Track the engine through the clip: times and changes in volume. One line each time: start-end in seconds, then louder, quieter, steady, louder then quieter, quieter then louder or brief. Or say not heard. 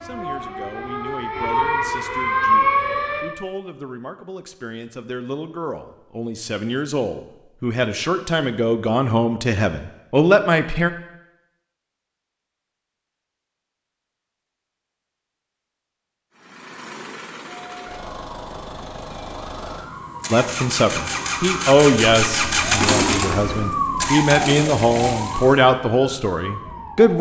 16.4-25.6 louder then quieter.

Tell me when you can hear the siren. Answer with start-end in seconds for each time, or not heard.
0.0-3.2, 17.5-27.1.